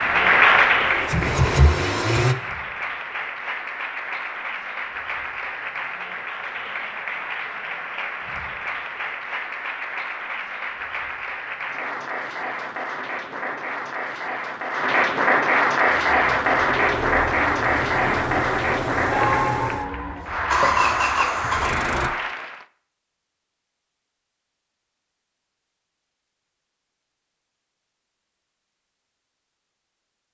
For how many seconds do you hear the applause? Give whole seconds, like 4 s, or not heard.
23 s.